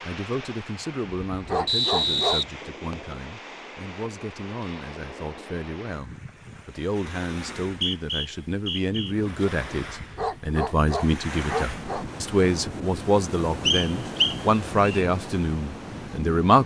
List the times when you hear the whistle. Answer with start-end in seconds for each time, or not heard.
1.6-3.1, 7.7-9.2, 13.7-15.1.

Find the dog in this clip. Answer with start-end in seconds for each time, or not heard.
1.3-2.5, 9.9-12.1.